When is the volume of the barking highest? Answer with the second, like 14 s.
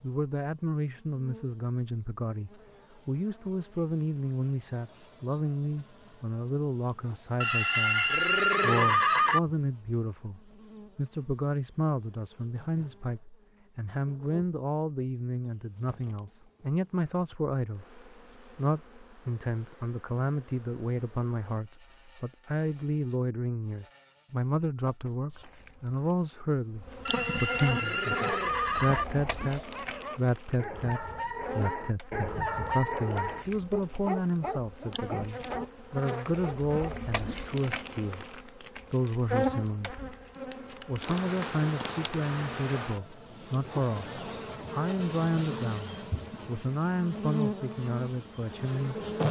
33 s.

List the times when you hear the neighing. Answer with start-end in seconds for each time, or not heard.
7.4-9.4, 27.1-29.1.